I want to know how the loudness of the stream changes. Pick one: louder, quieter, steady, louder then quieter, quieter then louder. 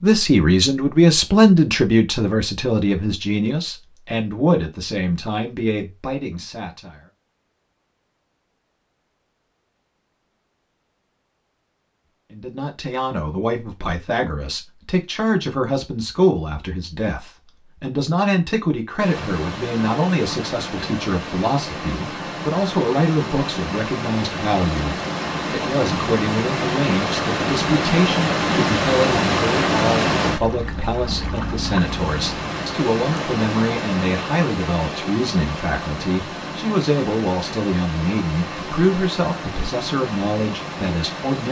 louder then quieter.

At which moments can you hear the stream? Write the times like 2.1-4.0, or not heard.
19.0-41.4.